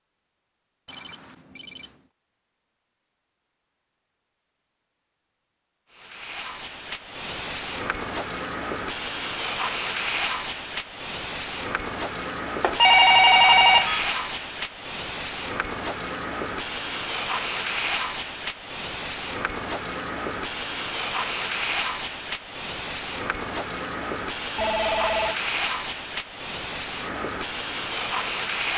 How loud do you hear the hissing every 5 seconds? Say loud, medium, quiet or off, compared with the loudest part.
off, loud, loud, loud, loud, loud.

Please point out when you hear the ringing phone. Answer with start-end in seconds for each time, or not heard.
0.8-1.9, 12.6-14.1, 24.6-25.4.